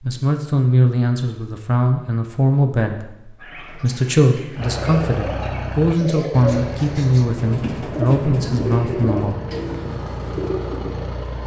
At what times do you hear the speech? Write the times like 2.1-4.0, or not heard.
0.0-9.4.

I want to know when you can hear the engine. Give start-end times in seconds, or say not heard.
4.5-11.4.